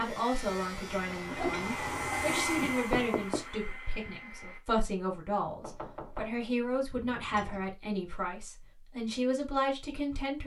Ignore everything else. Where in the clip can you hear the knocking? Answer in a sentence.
The knocking can be heard from 2.5 to 3.5 s and from 5.6 to 6.3 s.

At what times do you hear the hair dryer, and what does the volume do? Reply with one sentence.
You can hear the hair dryer from 0.2 to 4.6 s, getting louder then quieter.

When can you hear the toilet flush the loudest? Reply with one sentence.
The volume of the toilet flush peaks at 2 seconds.